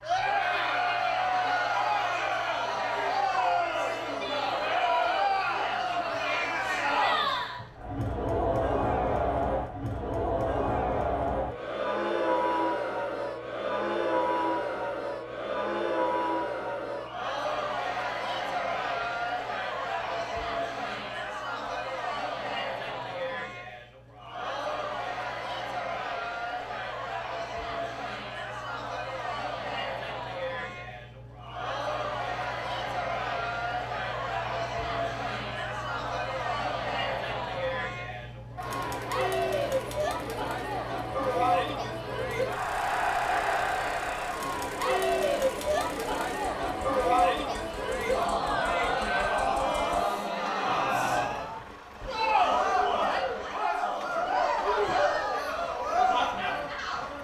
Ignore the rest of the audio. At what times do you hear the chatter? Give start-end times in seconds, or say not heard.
0.0-57.1.